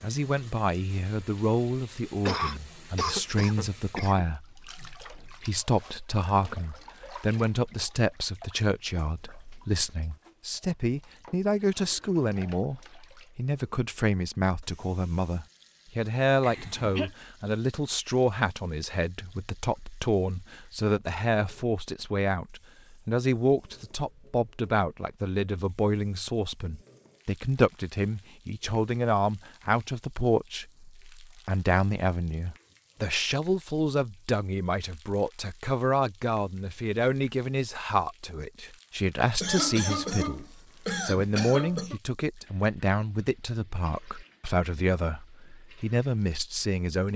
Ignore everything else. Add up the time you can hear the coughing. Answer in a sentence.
The coughing can be heard for 5 seconds in total.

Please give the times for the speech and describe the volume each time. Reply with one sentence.
You can hear the speech from 0.0 to 47.1 s, at a steady volume.